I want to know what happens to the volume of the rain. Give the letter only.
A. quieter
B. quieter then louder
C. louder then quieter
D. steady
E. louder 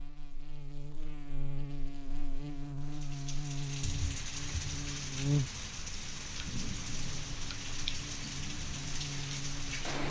D.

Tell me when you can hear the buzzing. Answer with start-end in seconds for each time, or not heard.
0.0-10.0.